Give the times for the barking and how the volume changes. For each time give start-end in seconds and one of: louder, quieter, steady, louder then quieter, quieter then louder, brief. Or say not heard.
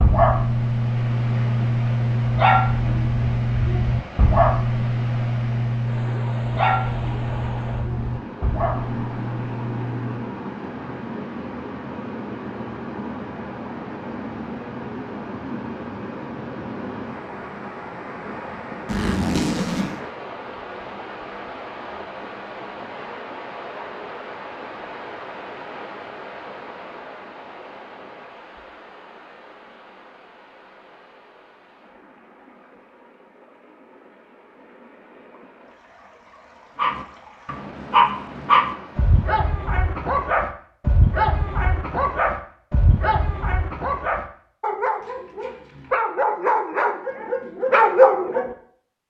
0.0-10.3 quieter
36.8-48.5 quieter then louder.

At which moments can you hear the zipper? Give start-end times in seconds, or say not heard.
18.9-20.0.